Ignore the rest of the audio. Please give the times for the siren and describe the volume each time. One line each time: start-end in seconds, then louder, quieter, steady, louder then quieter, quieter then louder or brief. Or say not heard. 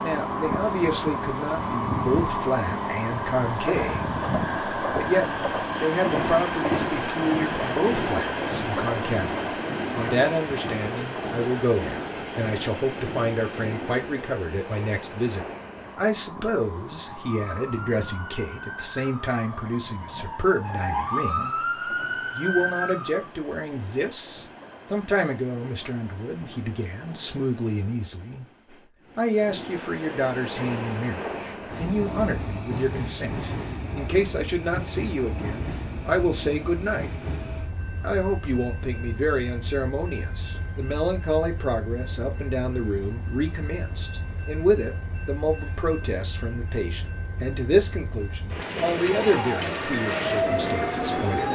17.1-23.3 louder
49.0-51.5 brief.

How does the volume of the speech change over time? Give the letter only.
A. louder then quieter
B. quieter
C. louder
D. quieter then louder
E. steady
E.